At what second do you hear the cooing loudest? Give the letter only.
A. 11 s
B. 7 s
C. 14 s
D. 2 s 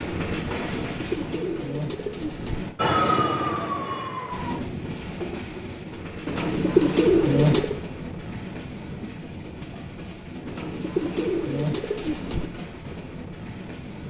B.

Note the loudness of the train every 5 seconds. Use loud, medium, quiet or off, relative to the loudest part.
loud, loud, medium.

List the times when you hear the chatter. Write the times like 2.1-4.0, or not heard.
not heard.